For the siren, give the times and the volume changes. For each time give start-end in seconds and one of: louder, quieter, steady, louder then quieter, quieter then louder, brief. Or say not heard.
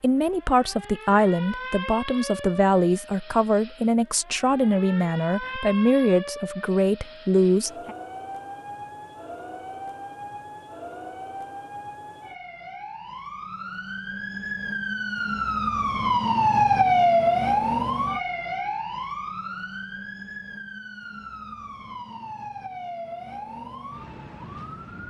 0.0-25.0 louder then quieter.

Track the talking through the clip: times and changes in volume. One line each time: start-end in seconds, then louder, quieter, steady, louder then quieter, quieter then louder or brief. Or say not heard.
0.0-7.9 steady.